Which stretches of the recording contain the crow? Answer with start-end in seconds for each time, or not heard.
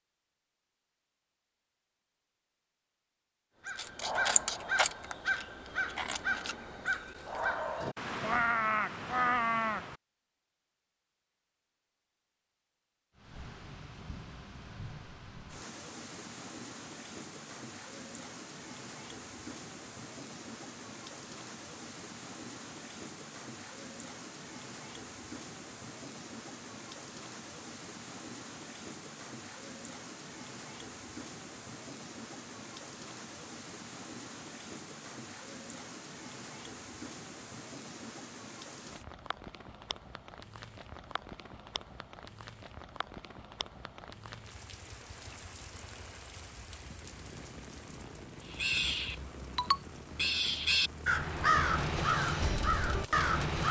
3.6-9.9, 48.5-53.6.